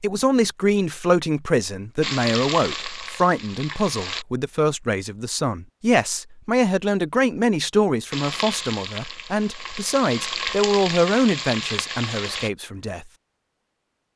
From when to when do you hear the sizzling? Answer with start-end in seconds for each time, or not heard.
2.0-4.2, 8.1-12.5.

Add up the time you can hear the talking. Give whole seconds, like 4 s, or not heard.
13 s.